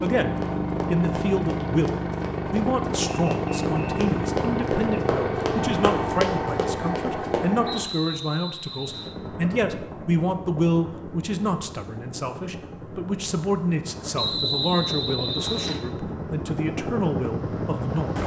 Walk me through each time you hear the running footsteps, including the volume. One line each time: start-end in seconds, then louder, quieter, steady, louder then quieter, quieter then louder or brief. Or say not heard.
0.0-7.5 louder.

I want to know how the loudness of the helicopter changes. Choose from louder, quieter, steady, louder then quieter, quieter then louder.
quieter then louder.